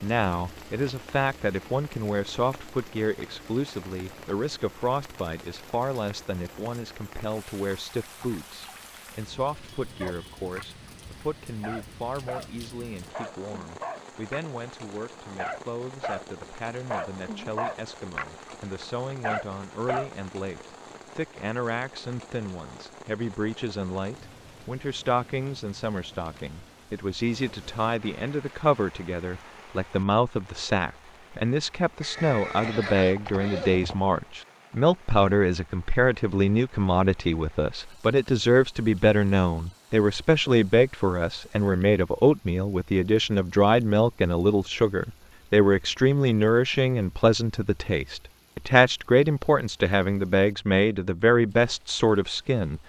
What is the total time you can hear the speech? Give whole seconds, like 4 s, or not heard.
53 s.